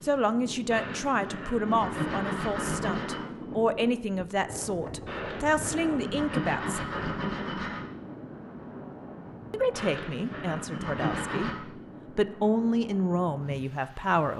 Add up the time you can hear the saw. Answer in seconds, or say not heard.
7 s.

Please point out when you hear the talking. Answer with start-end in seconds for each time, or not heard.
0.0-7.0, 9.5-11.5, 12.2-14.3.